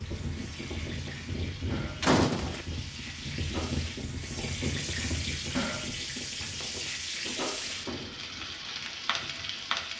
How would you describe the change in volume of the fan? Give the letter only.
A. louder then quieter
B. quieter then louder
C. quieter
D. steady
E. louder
C.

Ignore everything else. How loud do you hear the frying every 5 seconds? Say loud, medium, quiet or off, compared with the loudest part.
medium, loud.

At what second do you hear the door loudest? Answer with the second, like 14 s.
2 s.